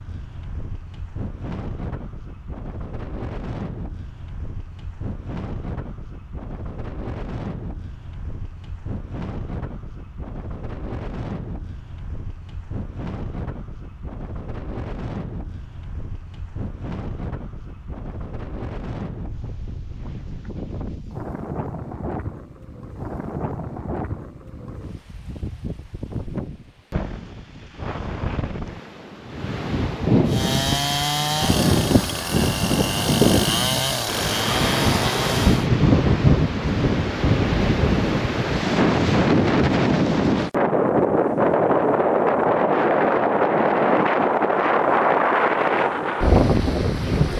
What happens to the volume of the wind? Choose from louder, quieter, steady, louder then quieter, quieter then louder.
louder.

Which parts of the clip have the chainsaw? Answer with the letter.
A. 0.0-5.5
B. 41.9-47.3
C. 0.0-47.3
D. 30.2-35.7
D.